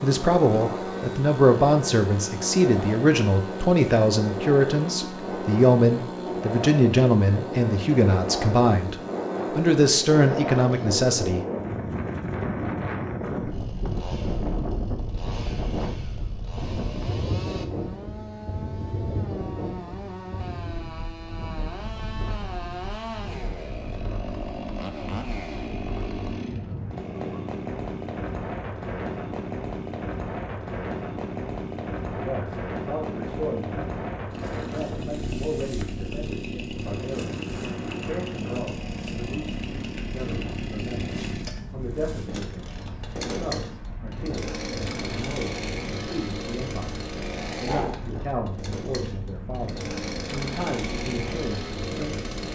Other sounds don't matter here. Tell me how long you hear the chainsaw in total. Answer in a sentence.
You can hear the chainsaw for 50 seconds altogether.